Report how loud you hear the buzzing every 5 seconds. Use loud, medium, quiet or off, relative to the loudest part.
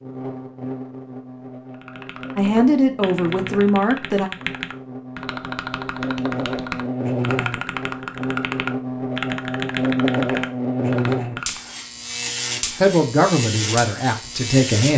medium, loud, loud.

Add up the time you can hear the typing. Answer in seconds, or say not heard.
10 s.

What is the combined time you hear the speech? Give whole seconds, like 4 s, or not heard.
4 s.